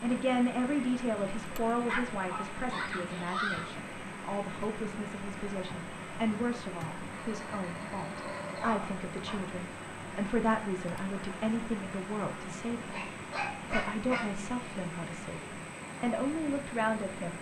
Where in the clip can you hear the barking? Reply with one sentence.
The barking can be heard from 1.8 to 3.6 s, from 7.2 to 9.4 s and from 12.8 to 14.3 s.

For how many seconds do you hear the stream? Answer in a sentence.
You can hear the stream for 17 seconds altogether.